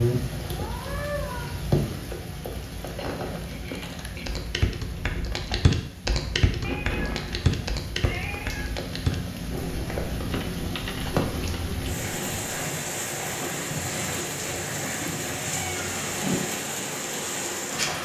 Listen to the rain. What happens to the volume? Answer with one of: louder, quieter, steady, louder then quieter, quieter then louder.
quieter then louder.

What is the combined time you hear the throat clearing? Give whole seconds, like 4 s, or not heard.
4 s.